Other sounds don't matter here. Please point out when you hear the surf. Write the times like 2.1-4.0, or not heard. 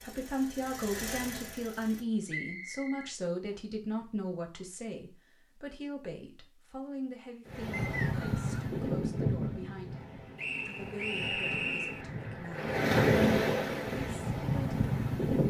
7.5-15.4.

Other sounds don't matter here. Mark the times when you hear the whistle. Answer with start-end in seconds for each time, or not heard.
2.2-3.5, 7.7-8.6, 10.3-12.1.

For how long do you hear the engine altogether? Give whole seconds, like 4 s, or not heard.
2 s.